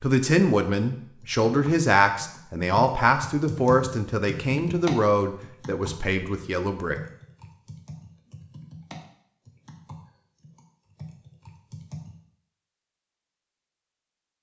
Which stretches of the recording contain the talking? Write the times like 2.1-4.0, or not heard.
0.0-7.0.